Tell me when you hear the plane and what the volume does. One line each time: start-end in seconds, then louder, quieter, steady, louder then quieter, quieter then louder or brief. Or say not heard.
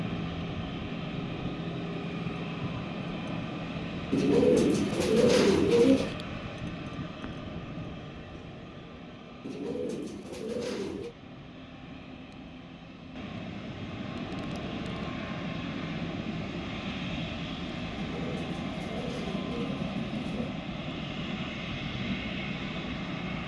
0.0-23.4 quieter then louder.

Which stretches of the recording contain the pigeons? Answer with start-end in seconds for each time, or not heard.
4.1-6.2, 9.4-11.2, 17.9-20.5.